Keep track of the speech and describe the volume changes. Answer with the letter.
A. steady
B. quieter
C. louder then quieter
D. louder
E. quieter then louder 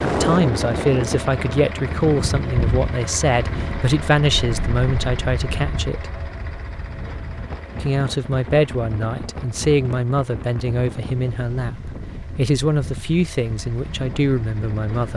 A.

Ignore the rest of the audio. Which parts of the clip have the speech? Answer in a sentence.
You can hear the speech from 0.0 to 6.1 s and from 7.8 to 15.1 s.